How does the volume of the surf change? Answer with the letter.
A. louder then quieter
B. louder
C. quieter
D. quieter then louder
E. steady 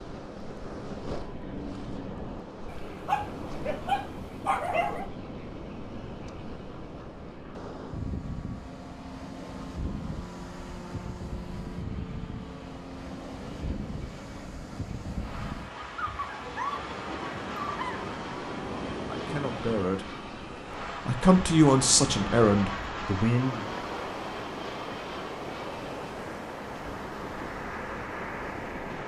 E.